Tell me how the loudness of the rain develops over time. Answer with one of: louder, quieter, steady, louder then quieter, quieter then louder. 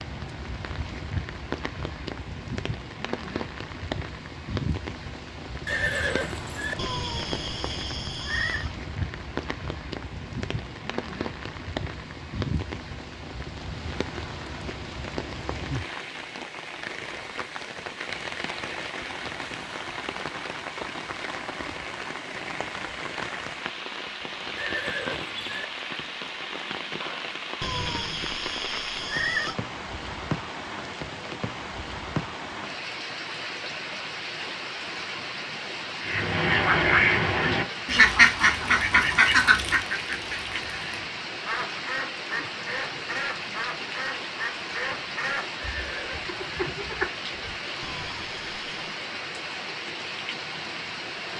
steady.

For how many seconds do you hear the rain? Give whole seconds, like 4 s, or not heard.
51 s.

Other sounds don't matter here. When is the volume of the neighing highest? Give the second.
6 s.